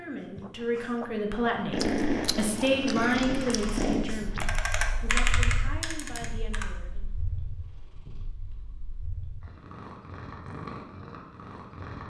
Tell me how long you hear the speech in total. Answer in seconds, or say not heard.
7 s.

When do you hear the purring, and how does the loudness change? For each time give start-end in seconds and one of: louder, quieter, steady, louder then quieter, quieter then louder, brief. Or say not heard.
1.7-12.0 quieter then louder.